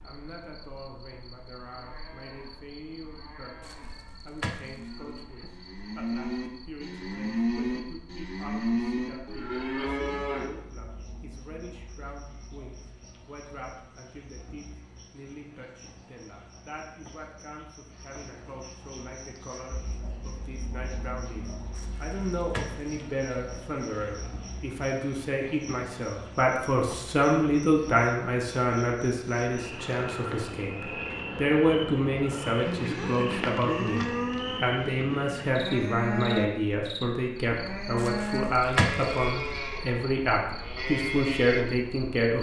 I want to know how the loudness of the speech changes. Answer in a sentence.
The loudness of the speech goes up.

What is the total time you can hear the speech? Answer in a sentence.
You can hear the speech for 42 seconds altogether.